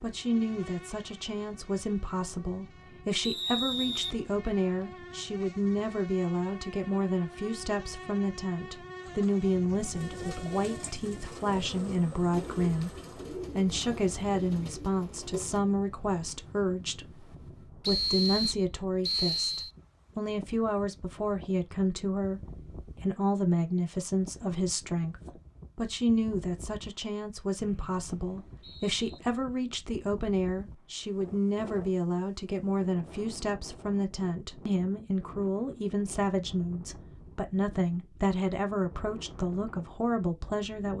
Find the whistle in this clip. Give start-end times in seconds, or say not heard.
3.2-4.2, 17.8-19.7, 27.6-29.2.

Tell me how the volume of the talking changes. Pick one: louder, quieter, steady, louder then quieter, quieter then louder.
steady.